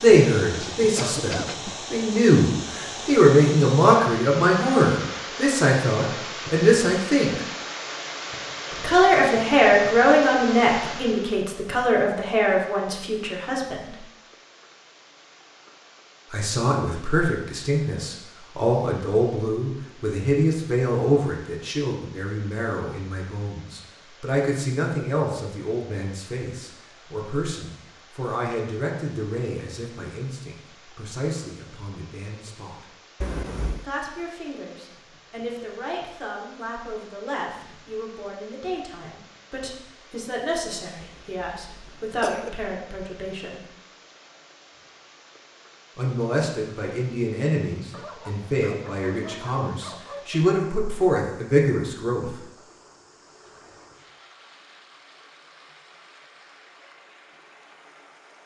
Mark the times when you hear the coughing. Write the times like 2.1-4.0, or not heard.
0.9-1.6, 33.2-33.9, 41.0-42.6.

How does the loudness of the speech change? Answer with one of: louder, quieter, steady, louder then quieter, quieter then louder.
quieter then louder.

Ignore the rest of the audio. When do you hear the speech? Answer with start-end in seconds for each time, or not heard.
0.0-7.4, 8.7-13.9, 16.3-32.9, 33.8-43.6, 46.0-52.4.